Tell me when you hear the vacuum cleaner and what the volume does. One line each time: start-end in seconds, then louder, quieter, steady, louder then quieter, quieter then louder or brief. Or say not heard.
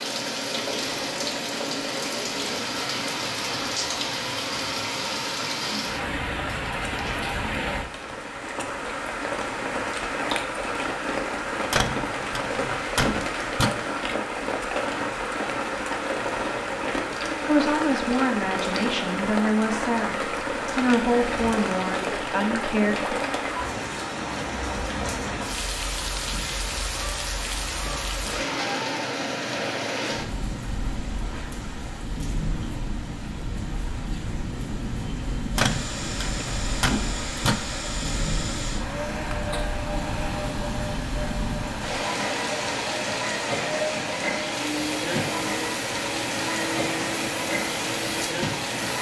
35.5-48.9 steady.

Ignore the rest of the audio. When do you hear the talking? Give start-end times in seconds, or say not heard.
17.4-23.1.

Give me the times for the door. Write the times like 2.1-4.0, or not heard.
11.7-13.7, 35.5-37.5.